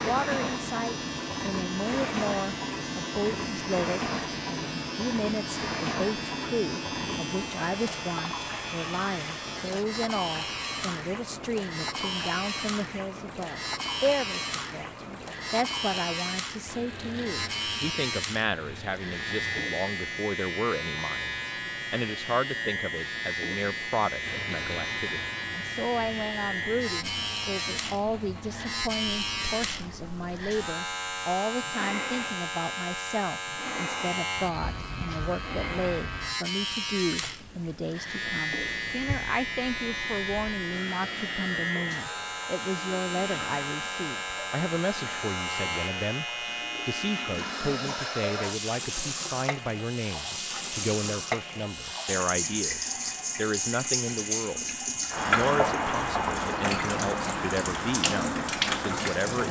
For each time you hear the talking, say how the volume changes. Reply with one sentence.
You can hear the talking from 0.0 to 59.4 s, at a steady volume.